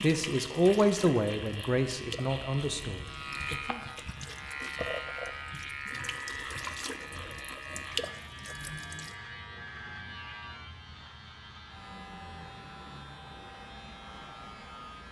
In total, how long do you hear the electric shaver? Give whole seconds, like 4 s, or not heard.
15 s.